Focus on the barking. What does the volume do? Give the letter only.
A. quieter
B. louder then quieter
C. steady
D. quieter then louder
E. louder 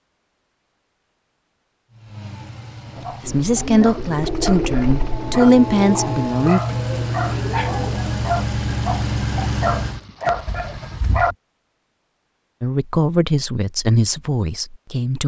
E.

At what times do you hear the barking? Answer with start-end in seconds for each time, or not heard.
3.0-11.3.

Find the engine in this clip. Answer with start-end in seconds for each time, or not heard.
1.9-11.3.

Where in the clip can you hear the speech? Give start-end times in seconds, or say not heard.
3.2-6.6, 12.6-15.2.